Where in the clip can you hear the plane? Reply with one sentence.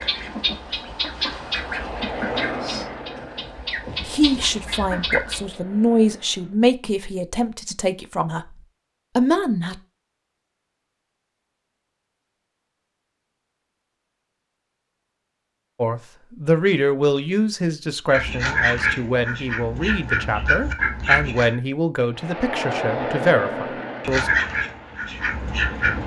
The plane can be heard from 0.0 to 6.6 s and from 22.1 to 26.0 s.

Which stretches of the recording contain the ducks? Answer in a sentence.
You can hear the ducks from 0.0 to 5.5 s, from 18.1 to 21.6 s and from 24.0 to 26.0 s.